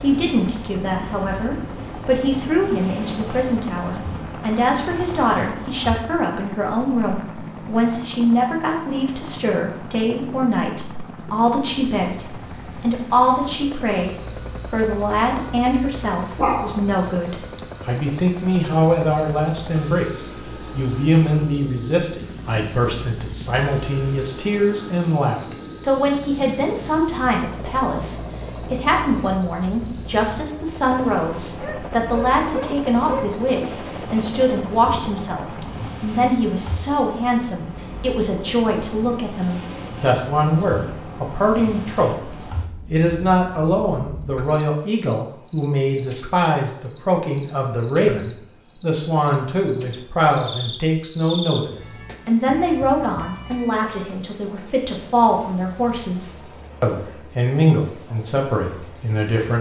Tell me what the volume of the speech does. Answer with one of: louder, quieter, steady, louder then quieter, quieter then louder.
steady.